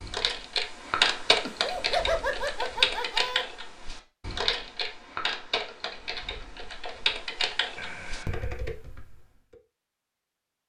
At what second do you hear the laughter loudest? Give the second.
2 s.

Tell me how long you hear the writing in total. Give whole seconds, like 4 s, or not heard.
not heard.